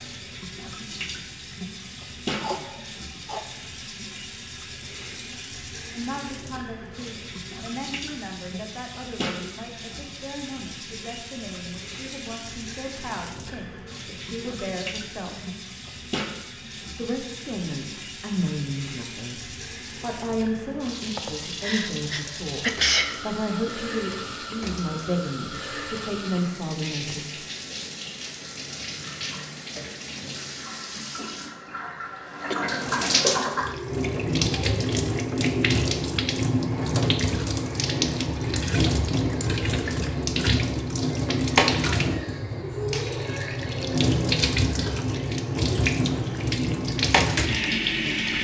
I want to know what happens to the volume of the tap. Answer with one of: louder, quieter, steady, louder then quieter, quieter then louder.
louder.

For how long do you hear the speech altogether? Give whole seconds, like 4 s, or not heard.
19 s.